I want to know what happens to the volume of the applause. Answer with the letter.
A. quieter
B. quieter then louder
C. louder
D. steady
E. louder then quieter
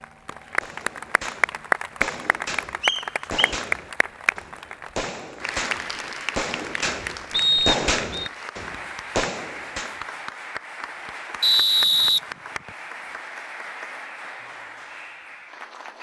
A.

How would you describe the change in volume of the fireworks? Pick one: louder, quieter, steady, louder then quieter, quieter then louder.
louder.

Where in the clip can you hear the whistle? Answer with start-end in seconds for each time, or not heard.
2.8-3.5, 7.3-8.3, 11.4-12.7.